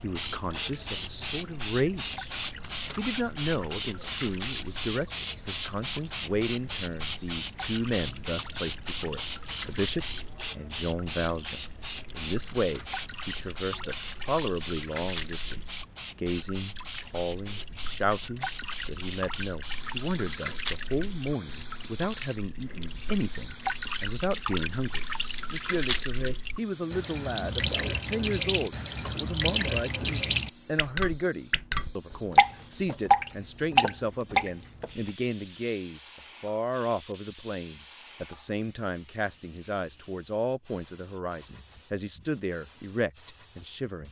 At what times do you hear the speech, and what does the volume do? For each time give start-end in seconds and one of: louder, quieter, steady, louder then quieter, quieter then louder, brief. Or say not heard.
0.0-2.4 brief
3.0-44.0 steady.